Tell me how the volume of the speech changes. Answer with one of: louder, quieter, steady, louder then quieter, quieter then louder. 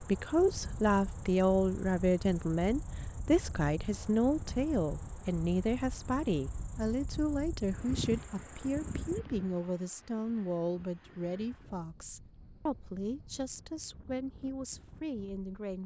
quieter.